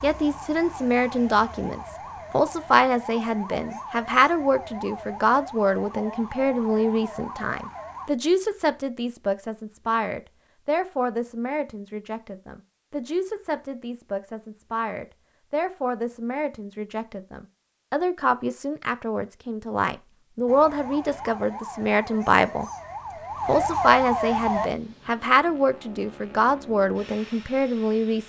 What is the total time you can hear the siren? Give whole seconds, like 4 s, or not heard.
12 s.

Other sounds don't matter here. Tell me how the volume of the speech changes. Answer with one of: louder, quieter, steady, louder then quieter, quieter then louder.
quieter then louder.